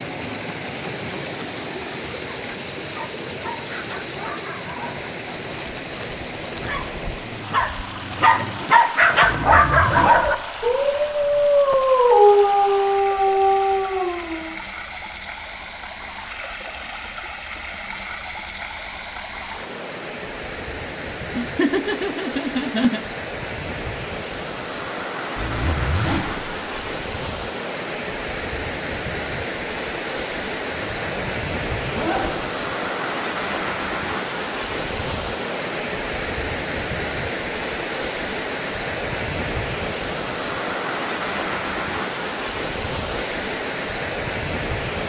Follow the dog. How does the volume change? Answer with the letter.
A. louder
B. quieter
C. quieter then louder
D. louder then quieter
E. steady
A.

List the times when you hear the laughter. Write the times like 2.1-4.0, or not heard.
21.3-23.0.